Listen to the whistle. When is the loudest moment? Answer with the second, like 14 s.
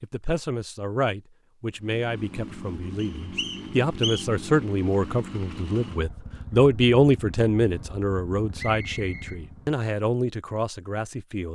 4 s.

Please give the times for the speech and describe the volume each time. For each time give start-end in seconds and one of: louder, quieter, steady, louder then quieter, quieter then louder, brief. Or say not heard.
0.0-11.5 louder then quieter.